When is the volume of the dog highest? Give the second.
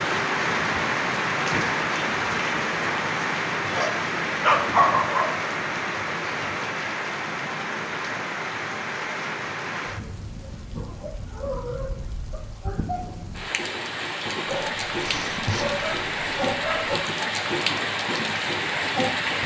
5 s.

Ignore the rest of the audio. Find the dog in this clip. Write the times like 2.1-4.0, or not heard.
3.6-5.3, 14.4-17.0.